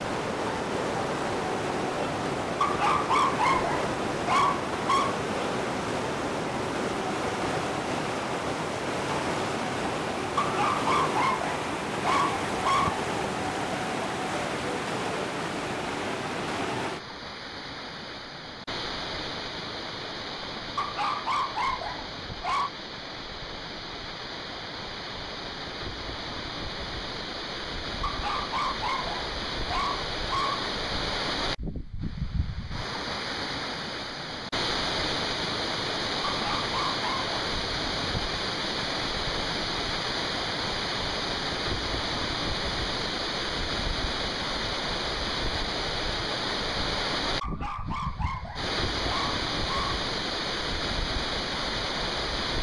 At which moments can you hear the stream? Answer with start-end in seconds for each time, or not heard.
0.0-52.5.